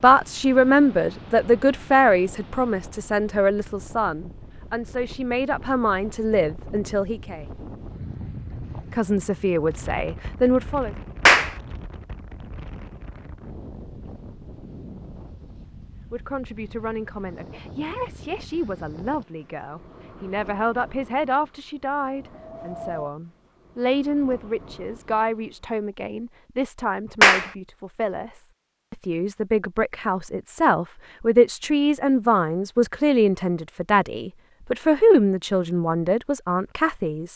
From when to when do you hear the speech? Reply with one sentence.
The speech can be heard from 0.0 to 7.4 s, from 8.9 to 10.9 s and from 16.1 to 37.3 s.